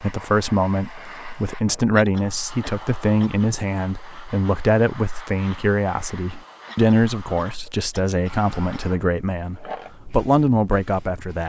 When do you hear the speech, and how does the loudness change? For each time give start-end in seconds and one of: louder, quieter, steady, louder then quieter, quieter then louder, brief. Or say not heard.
0.0-11.4 steady.